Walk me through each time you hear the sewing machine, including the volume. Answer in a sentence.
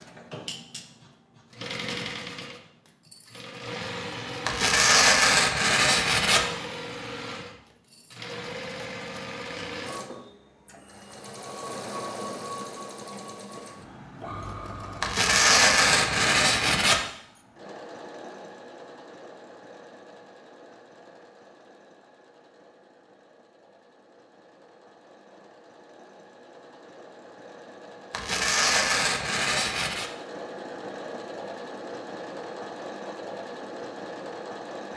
You can hear the sewing machine from 0.0 to 34.9 s, getting quieter then louder.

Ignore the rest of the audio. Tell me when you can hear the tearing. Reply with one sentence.
The tearing can be heard from 4.5 to 6.5 s, from 15.0 to 17.0 s and from 28.1 to 30.1 s.